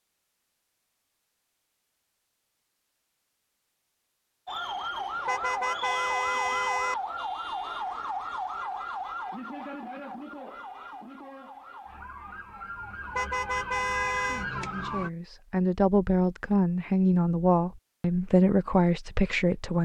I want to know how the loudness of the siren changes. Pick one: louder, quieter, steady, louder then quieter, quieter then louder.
quieter then louder.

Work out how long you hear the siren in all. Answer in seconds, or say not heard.
11 s.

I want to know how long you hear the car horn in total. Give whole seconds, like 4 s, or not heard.
3 s.